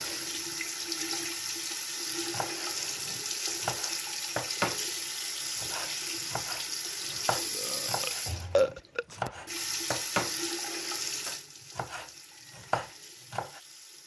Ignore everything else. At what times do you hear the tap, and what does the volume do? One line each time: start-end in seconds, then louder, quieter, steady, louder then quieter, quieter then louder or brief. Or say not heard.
0.0-14.0 quieter.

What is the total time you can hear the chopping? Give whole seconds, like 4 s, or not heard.
10 s.